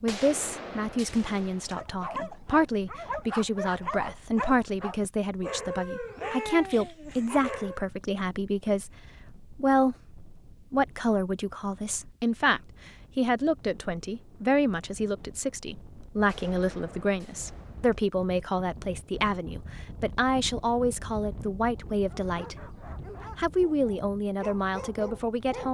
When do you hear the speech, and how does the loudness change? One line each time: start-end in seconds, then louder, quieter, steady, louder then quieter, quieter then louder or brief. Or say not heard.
0.0-22.8 steady
23.4-25.6 brief.